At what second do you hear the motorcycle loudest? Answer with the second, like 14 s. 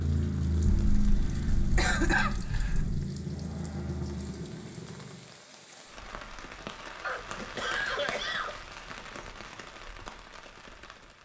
1 s.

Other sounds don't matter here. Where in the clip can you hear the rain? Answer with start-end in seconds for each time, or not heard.
0.0-11.2.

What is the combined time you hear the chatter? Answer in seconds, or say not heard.
not heard.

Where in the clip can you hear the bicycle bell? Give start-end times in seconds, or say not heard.
not heard.